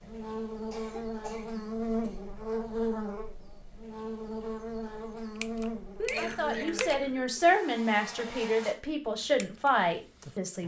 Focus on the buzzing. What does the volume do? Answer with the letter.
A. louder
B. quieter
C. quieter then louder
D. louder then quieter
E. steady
B.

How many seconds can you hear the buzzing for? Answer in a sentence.
The buzzing can be heard for 9 seconds in total.